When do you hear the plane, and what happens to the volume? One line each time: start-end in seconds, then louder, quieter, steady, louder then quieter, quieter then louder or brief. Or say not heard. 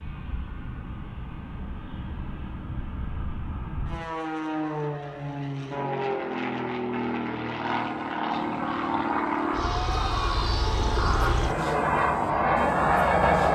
0.0-13.4 louder.